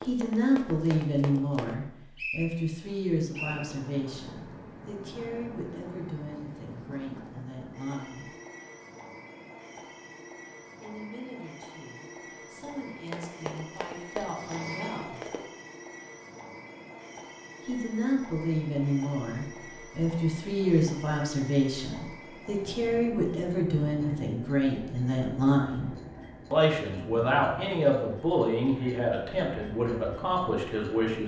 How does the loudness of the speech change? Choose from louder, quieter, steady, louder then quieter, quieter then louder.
quieter then louder.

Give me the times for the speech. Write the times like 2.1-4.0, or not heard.
0.1-8.3, 10.8-15.2, 17.6-25.9, 26.5-31.2.